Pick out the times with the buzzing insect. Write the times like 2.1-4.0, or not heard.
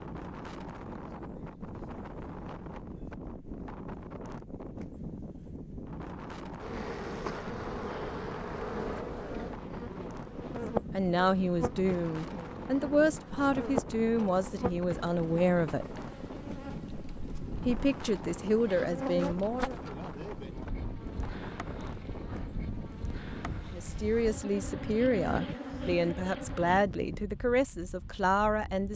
6.6-26.9.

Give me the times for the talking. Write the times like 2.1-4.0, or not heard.
10.9-15.8, 17.6-19.8, 23.7-28.9.